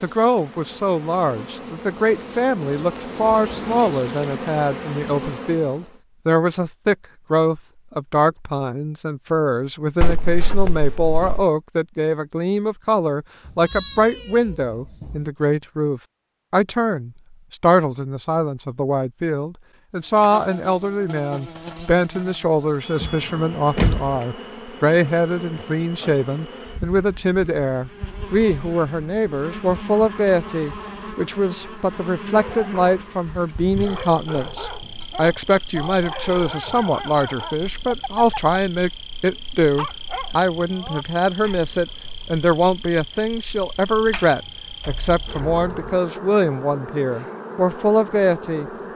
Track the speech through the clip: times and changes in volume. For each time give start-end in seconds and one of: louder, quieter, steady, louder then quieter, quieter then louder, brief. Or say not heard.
0.0-48.7 steady.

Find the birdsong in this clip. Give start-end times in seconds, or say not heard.
not heard.